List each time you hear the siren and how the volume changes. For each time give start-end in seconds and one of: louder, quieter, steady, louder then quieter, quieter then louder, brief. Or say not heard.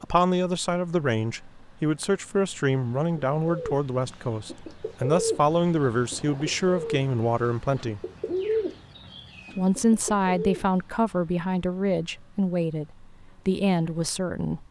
not heard.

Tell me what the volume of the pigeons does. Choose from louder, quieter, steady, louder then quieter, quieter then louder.
louder then quieter.